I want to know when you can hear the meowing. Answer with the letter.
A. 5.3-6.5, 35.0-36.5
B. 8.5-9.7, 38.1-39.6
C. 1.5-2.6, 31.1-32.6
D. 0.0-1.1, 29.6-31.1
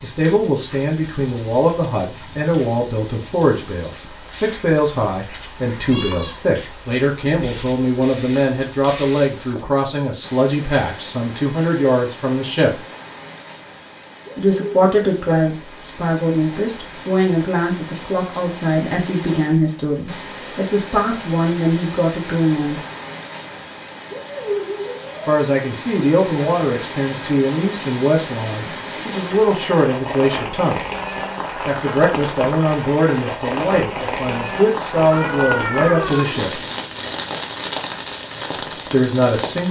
A.